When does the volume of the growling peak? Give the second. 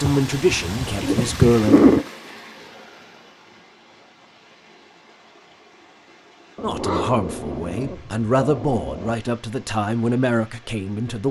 2 s.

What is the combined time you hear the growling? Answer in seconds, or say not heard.
5 s.